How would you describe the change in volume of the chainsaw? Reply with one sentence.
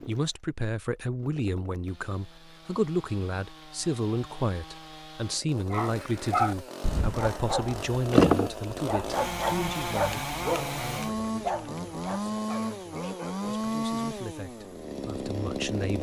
The loudness of the chainsaw goes up.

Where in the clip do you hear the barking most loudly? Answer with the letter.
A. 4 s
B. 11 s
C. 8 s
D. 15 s
C.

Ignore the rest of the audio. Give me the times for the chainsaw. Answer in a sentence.
You can hear the chainsaw from 0.0 to 15.9 s.